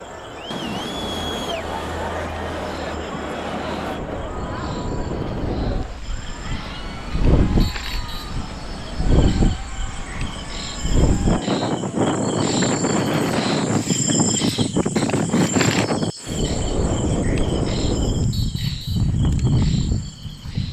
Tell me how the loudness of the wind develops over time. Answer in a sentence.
The volume of the wind goes up.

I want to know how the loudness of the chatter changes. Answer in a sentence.
The volume of the chatter goes down.